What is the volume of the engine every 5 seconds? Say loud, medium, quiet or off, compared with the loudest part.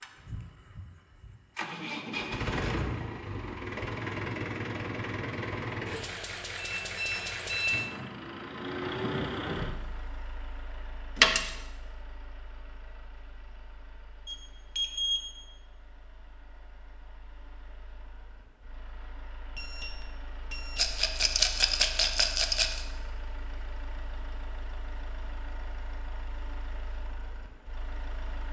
loud, loud, quiet, quiet, quiet, quiet.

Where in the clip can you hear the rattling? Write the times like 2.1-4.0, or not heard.
11.2-11.6, 20.8-22.9.